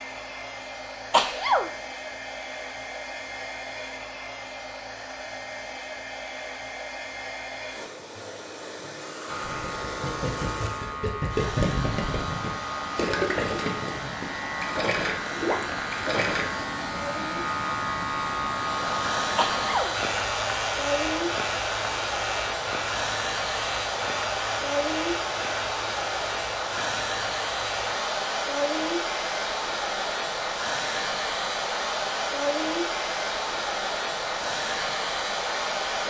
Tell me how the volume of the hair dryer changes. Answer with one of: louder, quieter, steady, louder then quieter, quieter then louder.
louder.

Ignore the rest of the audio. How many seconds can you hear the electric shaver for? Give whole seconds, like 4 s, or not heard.
27 s.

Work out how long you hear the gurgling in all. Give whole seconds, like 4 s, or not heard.
7 s.